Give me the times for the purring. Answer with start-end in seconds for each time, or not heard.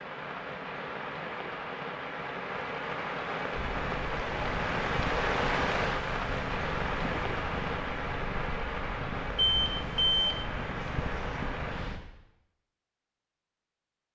3.5-12.0.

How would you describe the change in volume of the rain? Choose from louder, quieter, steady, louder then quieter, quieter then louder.
louder then quieter.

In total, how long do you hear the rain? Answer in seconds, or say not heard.
12 s.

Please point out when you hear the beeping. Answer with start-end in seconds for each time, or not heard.
9.3-10.4.